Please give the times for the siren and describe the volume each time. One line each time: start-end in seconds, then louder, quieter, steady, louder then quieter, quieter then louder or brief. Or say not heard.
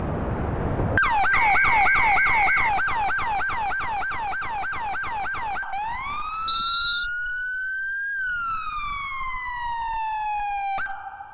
0.0-11.2 quieter.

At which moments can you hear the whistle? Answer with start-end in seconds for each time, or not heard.
1.3-2.8, 6.5-7.1.